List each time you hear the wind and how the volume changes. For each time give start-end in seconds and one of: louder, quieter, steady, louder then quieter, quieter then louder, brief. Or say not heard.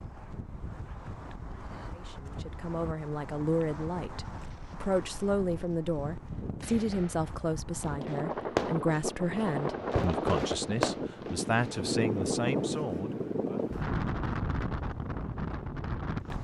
0.0-16.3 louder.